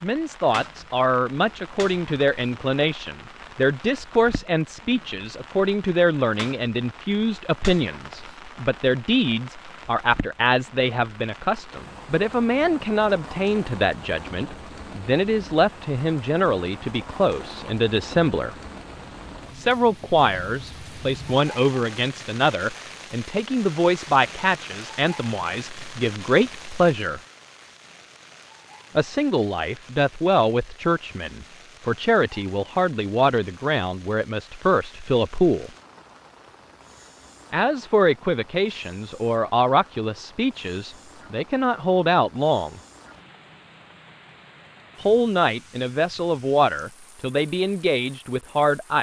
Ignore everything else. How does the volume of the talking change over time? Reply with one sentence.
The loudness of the talking stays about the same.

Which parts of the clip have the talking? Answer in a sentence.
You can hear the talking from 0.0 to 18.6 s, from 19.6 to 27.2 s, from 28.9 to 35.7 s, from 37.5 to 42.8 s and from 45.0 to 48.9 s.